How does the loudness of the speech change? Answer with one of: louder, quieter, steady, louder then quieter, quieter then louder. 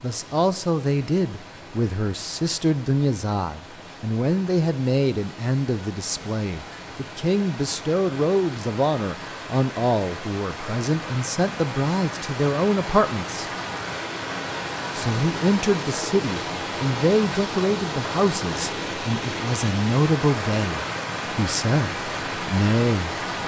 steady.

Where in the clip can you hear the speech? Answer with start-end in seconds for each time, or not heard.
0.0-13.5, 14.9-23.1.